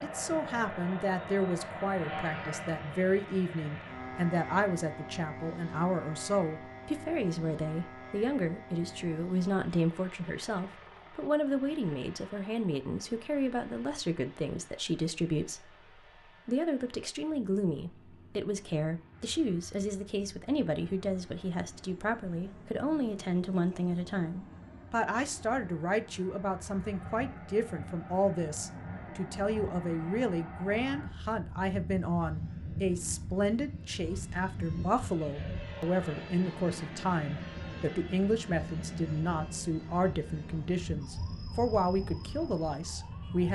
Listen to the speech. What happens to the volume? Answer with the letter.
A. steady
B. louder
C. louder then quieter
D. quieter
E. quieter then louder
A.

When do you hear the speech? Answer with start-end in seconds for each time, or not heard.
0.0-43.4.